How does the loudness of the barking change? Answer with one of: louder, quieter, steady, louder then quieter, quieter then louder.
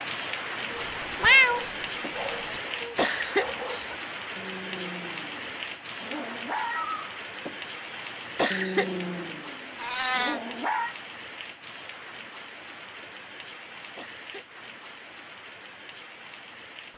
louder.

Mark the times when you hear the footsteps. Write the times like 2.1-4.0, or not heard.
not heard.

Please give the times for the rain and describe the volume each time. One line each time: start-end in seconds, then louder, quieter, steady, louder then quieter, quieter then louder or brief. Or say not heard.
0.0-16.9 quieter.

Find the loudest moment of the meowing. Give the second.
1 s.